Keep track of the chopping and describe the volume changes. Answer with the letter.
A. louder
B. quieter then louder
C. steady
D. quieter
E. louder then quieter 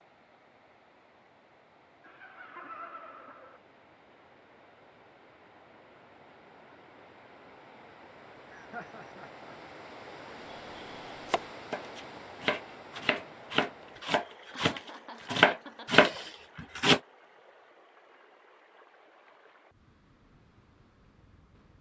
A.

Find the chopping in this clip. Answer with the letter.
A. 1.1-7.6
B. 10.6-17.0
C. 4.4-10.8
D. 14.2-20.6
B.